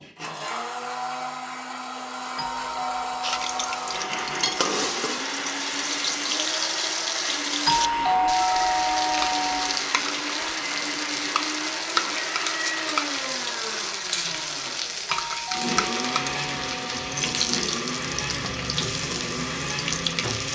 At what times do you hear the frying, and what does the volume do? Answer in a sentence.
The frying can be heard from 3.2 to 20.5 s, at a steady volume.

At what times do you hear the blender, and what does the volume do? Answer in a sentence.
You can hear the blender from 0.0 to 20.5 s, at a steady volume.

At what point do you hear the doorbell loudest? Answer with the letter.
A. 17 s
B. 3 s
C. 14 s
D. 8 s
D.